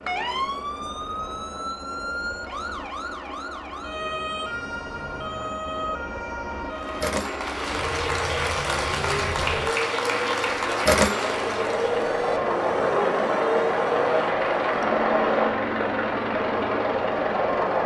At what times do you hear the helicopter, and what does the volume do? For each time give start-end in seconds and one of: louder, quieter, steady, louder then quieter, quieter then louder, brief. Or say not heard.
0.0-17.8 louder.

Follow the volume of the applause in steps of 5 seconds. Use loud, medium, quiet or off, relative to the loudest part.
off, loud, loud, off.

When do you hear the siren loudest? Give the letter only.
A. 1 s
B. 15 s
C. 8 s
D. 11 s
D.